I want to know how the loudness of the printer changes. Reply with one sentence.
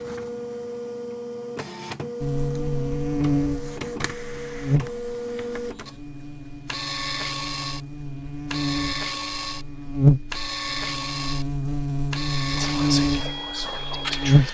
The volume of the printer stays about the same.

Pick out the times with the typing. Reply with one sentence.
You can't hear the typing here.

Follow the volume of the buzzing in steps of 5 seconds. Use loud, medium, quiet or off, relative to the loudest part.
loud, quiet, loud.